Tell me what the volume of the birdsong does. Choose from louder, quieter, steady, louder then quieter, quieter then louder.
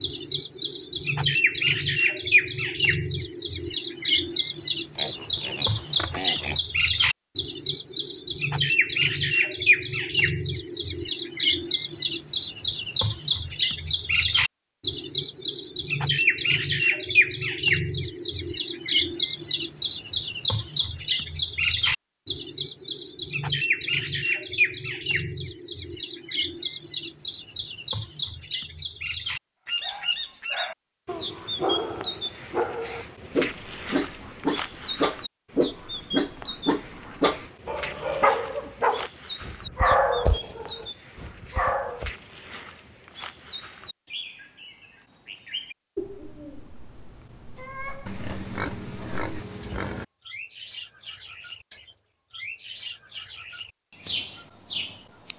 quieter.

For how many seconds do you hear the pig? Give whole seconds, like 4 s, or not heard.
4 s.